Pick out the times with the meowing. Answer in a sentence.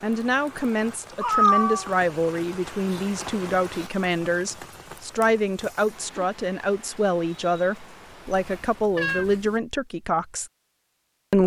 You can hear the meowing from 1.2 to 1.9 s and from 8.2 to 9.6 s.